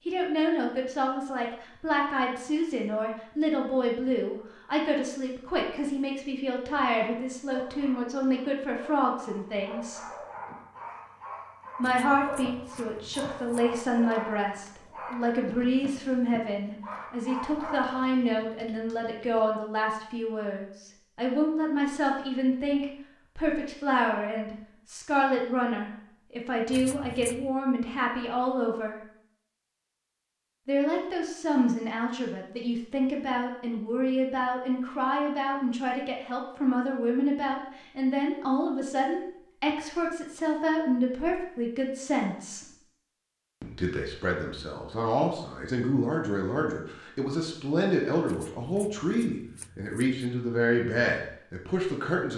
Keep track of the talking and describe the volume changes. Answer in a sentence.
The volume of the talking stays about the same.